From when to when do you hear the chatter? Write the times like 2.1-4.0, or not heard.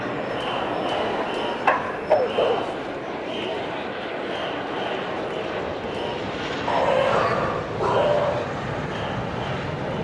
0.0-10.0.